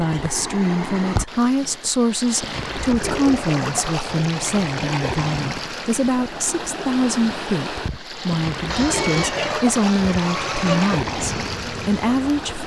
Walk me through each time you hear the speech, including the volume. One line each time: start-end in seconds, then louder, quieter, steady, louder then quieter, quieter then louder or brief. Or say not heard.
0.0-12.6 steady.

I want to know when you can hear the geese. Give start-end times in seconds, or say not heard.
8.7-11.0.